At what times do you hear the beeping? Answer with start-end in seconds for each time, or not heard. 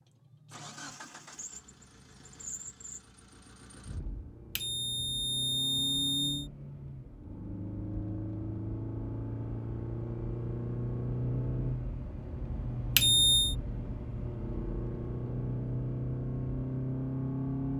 4.5-6.5, 12.9-13.6.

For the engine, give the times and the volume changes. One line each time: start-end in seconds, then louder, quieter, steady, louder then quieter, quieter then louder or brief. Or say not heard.
0.0-17.7 louder.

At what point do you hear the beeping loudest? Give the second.
13 s.